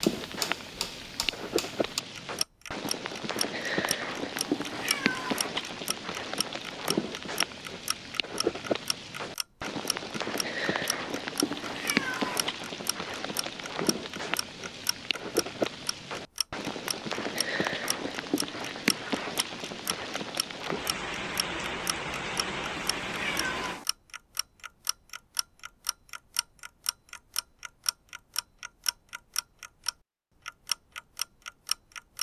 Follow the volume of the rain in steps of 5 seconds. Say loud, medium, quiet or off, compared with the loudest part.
loud, loud, loud, loud, loud, off, off.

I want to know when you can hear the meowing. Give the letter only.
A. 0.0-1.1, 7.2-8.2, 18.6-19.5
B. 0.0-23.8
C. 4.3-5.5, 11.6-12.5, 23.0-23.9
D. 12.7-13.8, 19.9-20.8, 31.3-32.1
C.